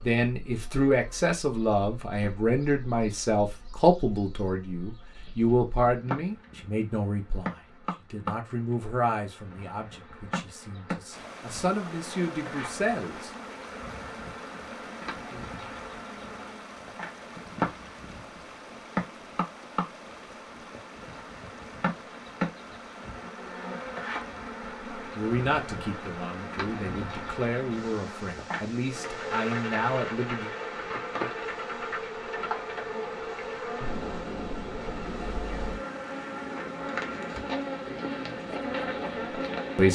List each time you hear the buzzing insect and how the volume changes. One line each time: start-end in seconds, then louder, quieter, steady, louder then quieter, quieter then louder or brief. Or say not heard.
0.0-39.8 louder.